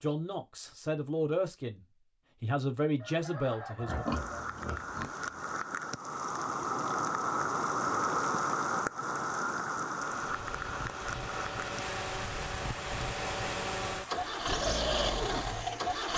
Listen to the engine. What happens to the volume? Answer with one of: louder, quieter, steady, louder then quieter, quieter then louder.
louder.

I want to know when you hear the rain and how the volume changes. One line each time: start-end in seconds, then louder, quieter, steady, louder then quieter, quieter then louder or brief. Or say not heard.
3.9-16.1 louder then quieter.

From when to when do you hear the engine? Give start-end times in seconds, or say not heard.
9.9-16.1.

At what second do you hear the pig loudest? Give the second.
4 s.